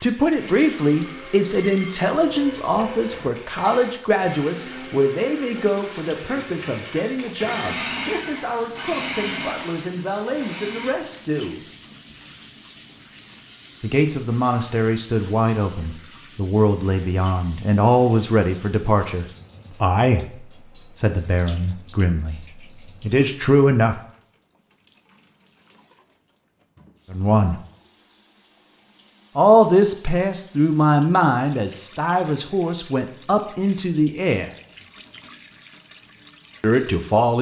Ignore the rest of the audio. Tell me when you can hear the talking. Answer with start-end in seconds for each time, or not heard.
0.0-11.6, 13.8-22.4, 23.0-24.0, 27.1-27.6, 29.4-34.5, 36.6-37.3.